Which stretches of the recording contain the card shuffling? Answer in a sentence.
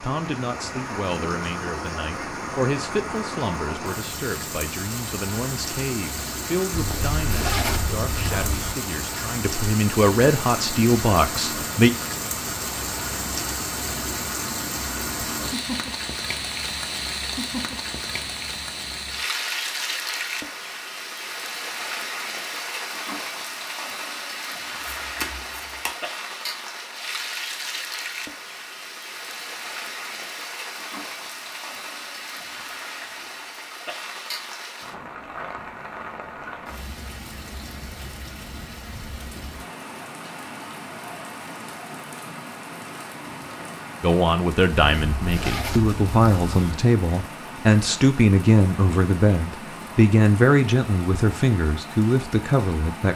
You can hear the card shuffling from 24.8 to 25.9 s.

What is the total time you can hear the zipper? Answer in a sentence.
The zipper can be heard for 4 seconds in total.